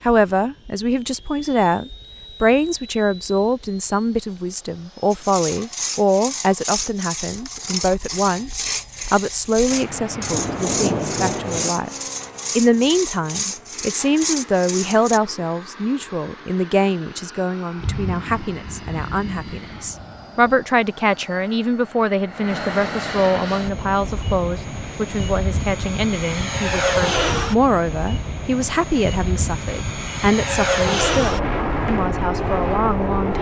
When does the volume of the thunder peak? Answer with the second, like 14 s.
11 s.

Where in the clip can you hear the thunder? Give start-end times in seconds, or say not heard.
9.7-11.7, 17.8-20.6.